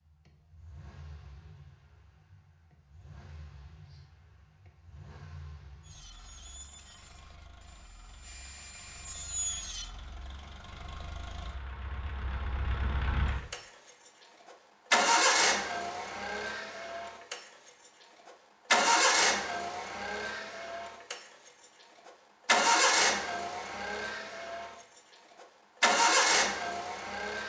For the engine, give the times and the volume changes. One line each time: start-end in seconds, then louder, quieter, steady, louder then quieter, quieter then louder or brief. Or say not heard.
0.1-27.4 louder.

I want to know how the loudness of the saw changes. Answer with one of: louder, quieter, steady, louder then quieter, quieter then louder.
quieter then louder.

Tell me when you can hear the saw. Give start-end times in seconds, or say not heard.
5.8-9.9.